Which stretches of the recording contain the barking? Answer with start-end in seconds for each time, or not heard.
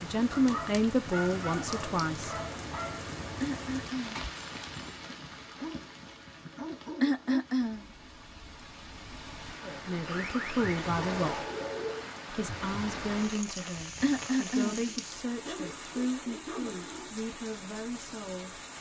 0.3-3.0, 4.7-7.4, 10.1-12.1, 14.7-17.1.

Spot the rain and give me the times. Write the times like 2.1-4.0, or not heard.
0.0-18.7.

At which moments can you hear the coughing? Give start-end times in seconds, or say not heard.
3.4-4.2, 7.0-7.9, 14.0-14.9.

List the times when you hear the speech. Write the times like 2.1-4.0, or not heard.
0.0-2.4, 9.6-11.4, 12.3-18.6.